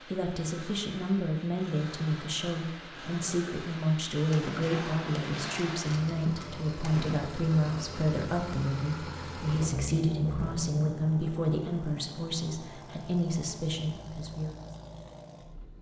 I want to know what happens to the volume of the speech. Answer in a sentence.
The volume of the speech stays about the same.